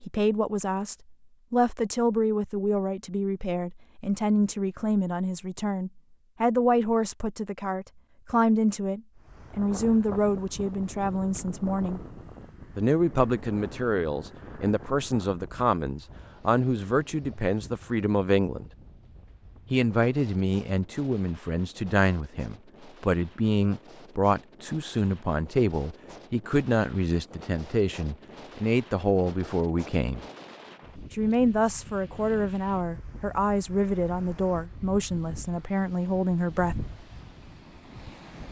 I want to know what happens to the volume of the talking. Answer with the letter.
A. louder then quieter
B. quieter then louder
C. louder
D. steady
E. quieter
D.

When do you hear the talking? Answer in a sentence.
The talking can be heard from 0.0 to 12.0 s, from 12.8 to 18.7 s, from 19.7 to 30.2 s and from 31.1 to 36.8 s.